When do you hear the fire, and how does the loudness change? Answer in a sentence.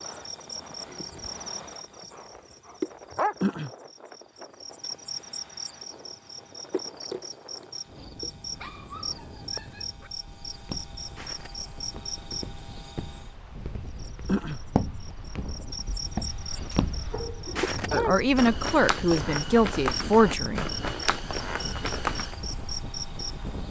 The fire can't be heard in this clip.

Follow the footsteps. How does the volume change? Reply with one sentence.
The volume of the footsteps goes up.